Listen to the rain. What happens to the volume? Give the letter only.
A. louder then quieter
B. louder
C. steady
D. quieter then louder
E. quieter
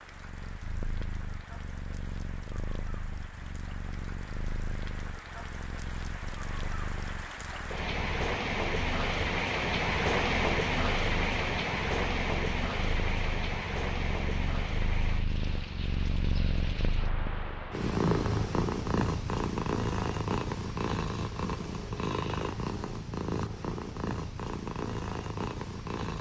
A.